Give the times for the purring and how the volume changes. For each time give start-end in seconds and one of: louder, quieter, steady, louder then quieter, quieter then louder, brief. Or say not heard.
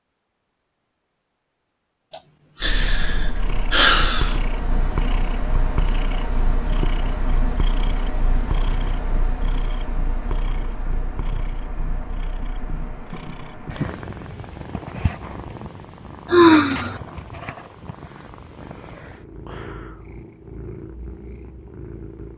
2.6-22.3 quieter.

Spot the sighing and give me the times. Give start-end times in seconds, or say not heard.
2.1-4.3, 16.2-17.0.